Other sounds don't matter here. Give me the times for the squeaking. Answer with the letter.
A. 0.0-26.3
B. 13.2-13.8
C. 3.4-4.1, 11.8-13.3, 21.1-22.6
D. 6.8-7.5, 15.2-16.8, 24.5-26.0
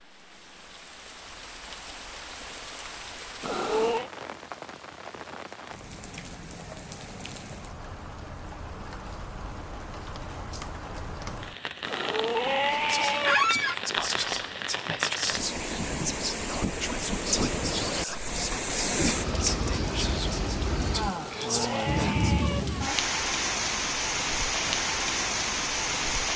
B.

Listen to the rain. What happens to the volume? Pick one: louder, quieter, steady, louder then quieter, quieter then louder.
louder.